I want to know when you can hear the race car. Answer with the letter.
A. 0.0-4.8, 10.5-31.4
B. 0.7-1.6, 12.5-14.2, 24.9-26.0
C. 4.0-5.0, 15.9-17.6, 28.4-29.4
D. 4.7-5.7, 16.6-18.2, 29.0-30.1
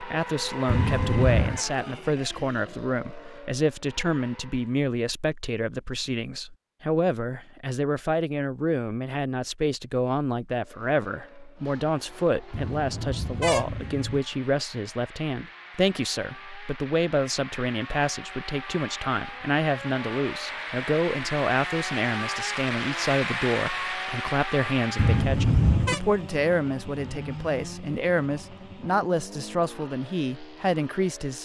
A.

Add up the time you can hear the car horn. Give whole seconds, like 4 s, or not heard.
4 s.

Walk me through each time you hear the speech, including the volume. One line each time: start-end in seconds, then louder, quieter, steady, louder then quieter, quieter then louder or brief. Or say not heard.
0.0-31.4 steady.